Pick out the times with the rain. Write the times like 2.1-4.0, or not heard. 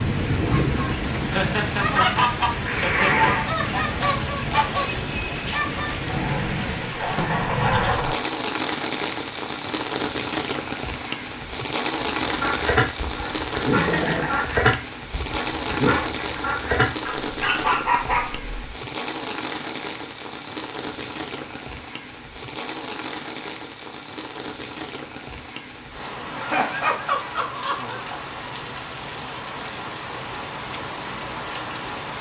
0.0-32.1.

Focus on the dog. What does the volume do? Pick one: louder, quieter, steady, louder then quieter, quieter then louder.
steady.